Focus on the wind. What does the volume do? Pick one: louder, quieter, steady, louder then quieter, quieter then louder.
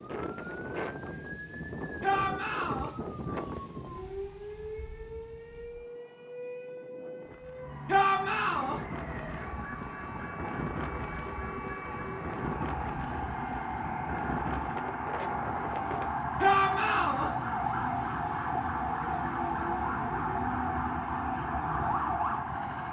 quieter then louder.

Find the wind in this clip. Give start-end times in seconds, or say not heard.
0.0-16.1.